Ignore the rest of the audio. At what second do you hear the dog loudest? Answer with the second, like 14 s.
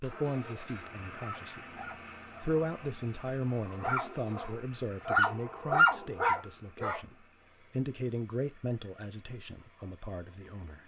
6 s.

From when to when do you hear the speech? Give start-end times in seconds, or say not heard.
0.0-1.8, 2.4-10.8.